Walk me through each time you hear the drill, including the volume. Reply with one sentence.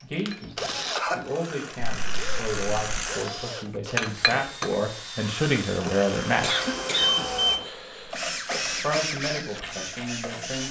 You can hear the drill from 0.0 to 10.6 s, getting quieter then louder.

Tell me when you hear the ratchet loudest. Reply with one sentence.
The volume of the ratchet peaks at 4 seconds.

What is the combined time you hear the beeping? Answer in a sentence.
You can hear the beeping for 2 seconds altogether.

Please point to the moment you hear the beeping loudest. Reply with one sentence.
The volume of the beeping peaks at 7 seconds.